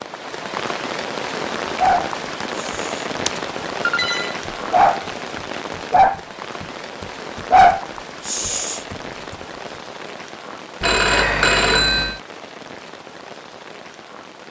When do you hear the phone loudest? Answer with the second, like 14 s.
12 s.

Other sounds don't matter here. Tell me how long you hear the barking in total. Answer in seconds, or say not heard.
5 s.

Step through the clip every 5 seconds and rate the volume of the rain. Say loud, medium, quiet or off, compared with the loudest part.
loud, medium, medium.